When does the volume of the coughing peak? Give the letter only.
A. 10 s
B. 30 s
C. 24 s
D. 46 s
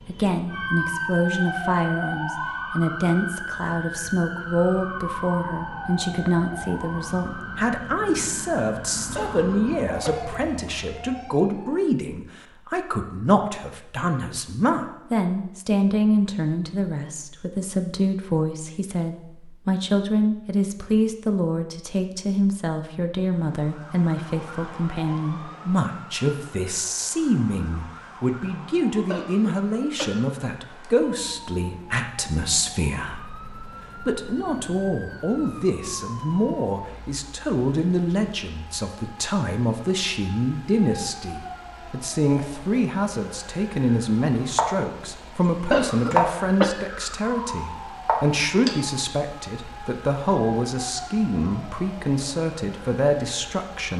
D.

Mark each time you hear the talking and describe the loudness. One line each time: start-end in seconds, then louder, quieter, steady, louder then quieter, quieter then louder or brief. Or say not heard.
0.1-53.9 steady.